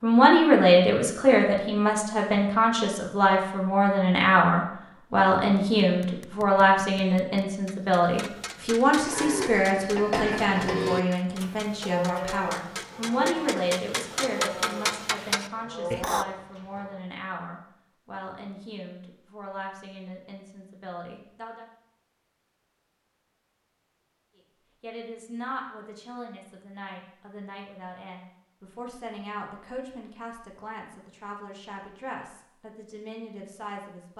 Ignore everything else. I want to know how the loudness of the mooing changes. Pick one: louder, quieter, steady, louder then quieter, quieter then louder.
quieter.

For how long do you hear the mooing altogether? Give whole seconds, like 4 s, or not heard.
8 s.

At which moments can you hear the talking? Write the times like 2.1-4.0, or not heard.
0.0-21.6, 24.8-34.1.